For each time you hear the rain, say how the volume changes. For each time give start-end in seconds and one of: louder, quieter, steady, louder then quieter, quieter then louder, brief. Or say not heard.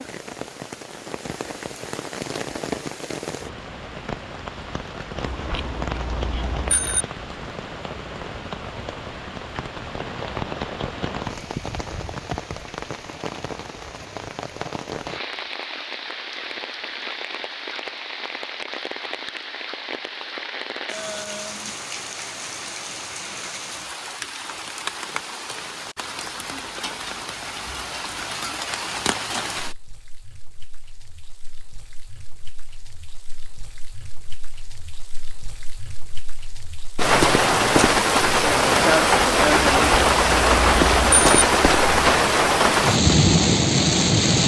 0.0-44.4 louder.